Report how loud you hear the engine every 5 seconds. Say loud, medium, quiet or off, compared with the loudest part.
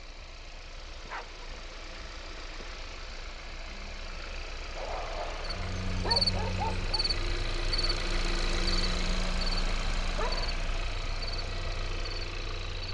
medium, loud, loud.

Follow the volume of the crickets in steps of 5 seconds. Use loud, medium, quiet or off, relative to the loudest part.
off, loud, medium.